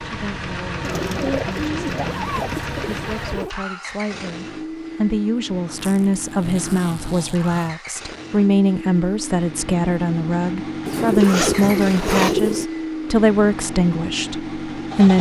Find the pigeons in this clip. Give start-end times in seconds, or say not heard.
0.8-3.0, 10.8-12.7.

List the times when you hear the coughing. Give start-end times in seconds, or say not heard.
not heard.